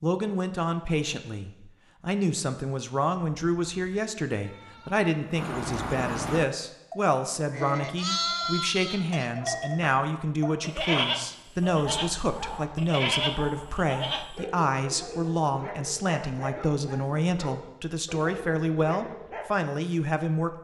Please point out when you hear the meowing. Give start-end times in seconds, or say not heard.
not heard.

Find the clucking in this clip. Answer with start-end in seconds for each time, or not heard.
not heard.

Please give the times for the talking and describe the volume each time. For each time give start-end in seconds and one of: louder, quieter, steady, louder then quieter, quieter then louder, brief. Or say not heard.
0.0-20.5 steady.